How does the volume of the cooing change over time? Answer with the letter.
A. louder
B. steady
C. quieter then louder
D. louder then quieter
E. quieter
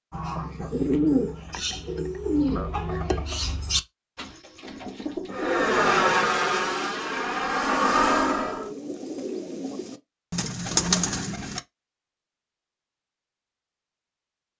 C.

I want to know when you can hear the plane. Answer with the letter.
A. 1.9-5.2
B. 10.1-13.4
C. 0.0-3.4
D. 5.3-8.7
D.